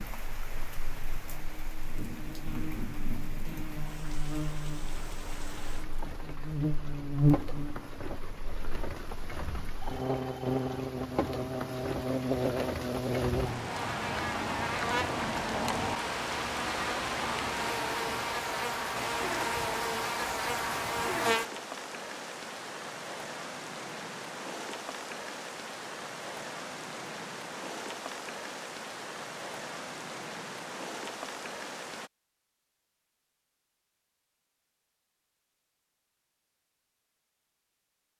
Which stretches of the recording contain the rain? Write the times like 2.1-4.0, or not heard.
0.0-32.1.